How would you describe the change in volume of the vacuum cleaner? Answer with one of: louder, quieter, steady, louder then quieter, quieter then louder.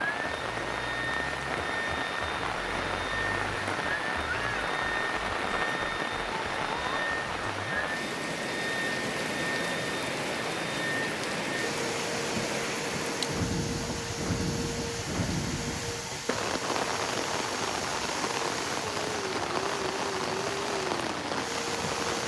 steady.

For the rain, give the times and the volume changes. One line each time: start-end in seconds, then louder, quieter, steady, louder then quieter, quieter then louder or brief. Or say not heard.
0.0-22.2 steady.